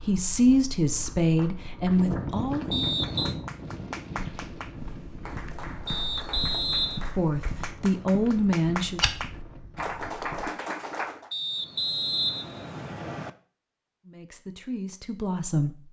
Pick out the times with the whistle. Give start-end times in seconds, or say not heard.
2.7-3.4, 5.8-7.1, 11.3-13.3.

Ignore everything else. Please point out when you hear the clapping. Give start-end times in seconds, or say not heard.
1.1-11.3.